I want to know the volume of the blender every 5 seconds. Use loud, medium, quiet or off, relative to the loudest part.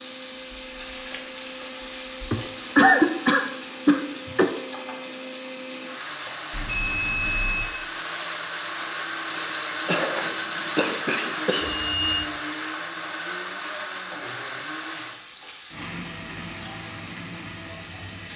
medium, loud, loud, medium.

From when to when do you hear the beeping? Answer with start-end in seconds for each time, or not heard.
6.5-7.7, 11.6-12.2.